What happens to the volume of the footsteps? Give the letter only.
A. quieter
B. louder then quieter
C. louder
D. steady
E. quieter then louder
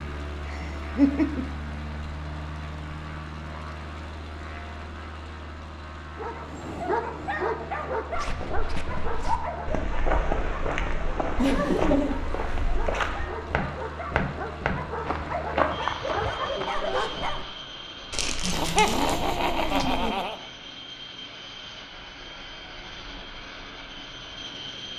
D.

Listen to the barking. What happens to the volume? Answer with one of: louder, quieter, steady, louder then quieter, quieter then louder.
quieter then louder.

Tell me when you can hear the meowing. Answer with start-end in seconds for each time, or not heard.
18.1-20.1.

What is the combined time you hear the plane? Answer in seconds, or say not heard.
25 s.